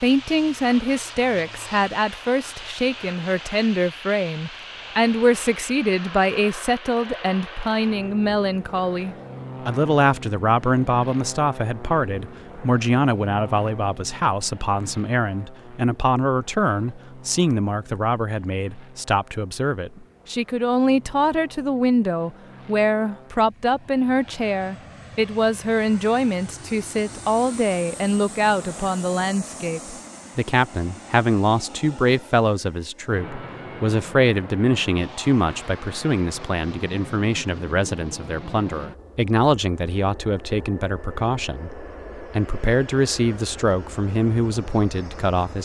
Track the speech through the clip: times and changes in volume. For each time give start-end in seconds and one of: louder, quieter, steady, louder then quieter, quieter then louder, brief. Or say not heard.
0.0-45.5 steady.